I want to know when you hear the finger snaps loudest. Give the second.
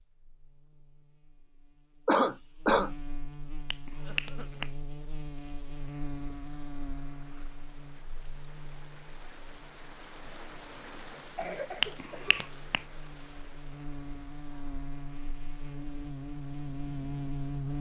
12 s.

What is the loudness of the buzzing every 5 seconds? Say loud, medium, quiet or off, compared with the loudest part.
medium, medium, medium, loud.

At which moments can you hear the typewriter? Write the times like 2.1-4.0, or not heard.
not heard.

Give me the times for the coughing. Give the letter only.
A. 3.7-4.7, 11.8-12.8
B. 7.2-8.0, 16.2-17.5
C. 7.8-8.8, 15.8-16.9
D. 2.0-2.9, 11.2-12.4
D.